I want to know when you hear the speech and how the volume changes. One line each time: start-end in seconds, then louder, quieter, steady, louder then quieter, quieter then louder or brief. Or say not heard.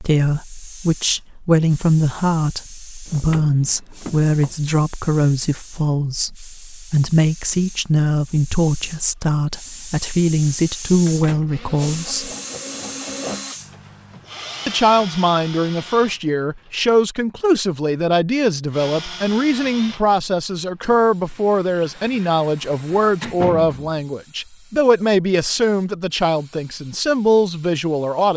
0.0-12.3 steady
14.7-28.3 steady.